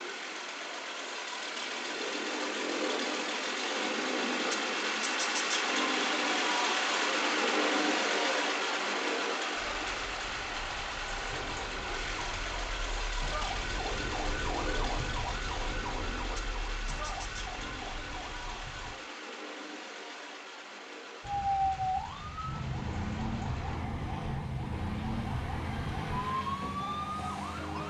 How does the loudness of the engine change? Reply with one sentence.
The loudness of the engine goes down.